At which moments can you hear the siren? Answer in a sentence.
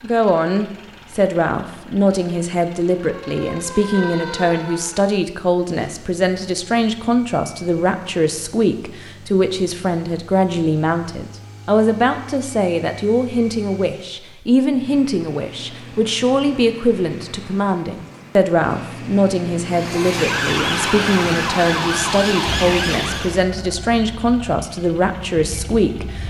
The siren can be heard from 3.0 to 5.2 s and from 19.6 to 23.4 s.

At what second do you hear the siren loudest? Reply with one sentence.
The volume of the siren peaks at 21 seconds.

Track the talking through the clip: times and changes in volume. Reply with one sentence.
You can hear the talking from 0.0 to 26.2 s, at a steady volume.